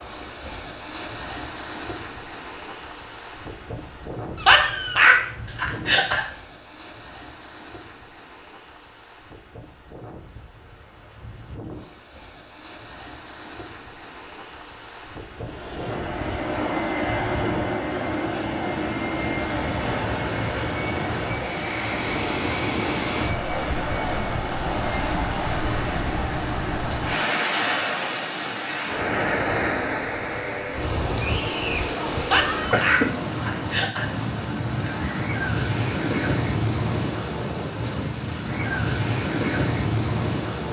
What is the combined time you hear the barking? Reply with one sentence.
The barking can be heard for 4 seconds in total.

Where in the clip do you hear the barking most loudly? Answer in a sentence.
The loudest moment of the barking is at 5 seconds.